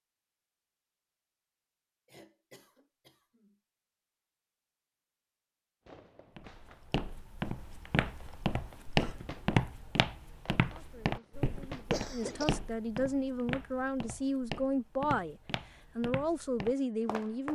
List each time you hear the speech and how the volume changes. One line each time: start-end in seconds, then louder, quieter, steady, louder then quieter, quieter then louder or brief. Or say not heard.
10.8-17.5 louder.